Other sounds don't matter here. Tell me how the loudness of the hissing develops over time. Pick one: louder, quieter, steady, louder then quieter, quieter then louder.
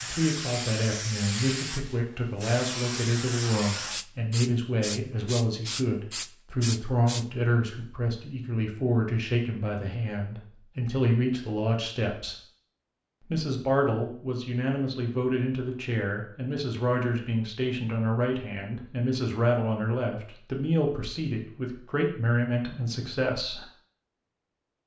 steady.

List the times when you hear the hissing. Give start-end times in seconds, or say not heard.
0.0-7.2.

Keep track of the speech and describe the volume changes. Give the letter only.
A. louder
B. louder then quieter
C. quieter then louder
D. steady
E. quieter
D.